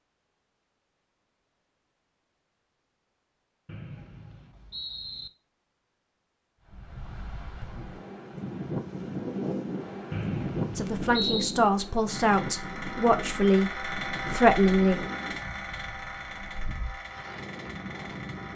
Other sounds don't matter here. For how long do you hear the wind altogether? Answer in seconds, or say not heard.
12 s.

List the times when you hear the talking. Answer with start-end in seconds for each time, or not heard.
10.8-15.1.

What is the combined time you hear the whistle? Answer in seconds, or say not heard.
3 s.